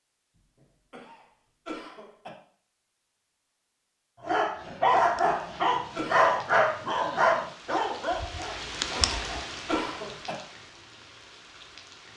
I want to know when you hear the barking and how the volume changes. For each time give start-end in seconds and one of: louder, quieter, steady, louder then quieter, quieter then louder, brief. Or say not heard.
4.2-10.2 quieter.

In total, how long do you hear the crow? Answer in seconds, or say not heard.
not heard.